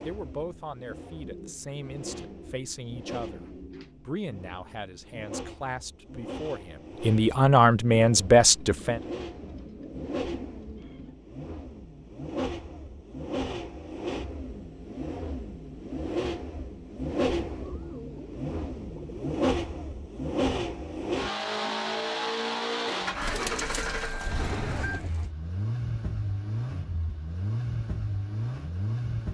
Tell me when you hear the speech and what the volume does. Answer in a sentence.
You can hear the speech from 0.1 to 9.0 s, getting louder.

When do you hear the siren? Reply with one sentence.
You can't hear the siren here.